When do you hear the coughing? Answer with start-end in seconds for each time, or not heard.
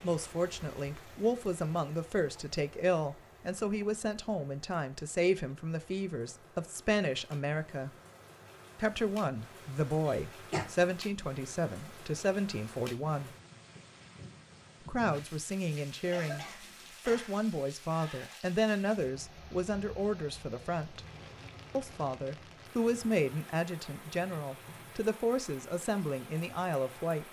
10.1-10.7, 16.1-17.4.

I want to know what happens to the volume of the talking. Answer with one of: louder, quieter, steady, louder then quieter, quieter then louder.
steady.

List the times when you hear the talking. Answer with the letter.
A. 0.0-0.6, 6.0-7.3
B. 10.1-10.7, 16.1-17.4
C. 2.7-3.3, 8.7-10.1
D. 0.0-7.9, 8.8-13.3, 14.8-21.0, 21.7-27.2
D.